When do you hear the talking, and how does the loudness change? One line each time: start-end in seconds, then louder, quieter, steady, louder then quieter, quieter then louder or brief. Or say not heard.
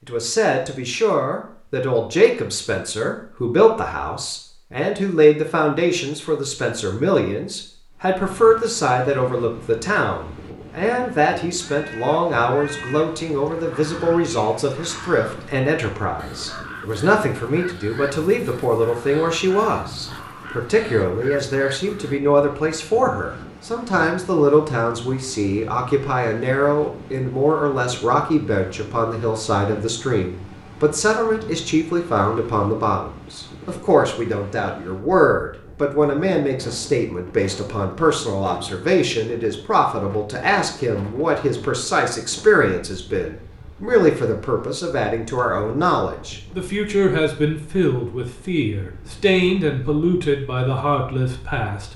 0.1-51.9 steady.